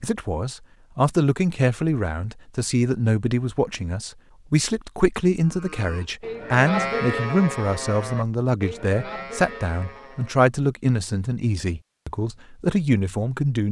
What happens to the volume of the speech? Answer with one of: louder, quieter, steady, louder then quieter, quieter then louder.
steady.